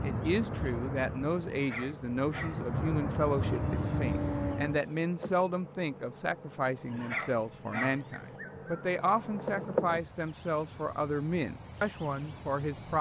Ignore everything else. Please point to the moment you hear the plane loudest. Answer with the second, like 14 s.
4 s.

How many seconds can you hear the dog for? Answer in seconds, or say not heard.
3 s.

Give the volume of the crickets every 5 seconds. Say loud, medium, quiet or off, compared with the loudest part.
quiet, medium, loud.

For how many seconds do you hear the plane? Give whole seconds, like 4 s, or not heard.
5 s.